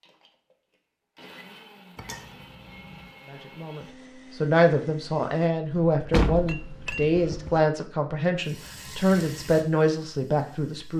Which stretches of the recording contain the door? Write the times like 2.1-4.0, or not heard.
6.1-7.6.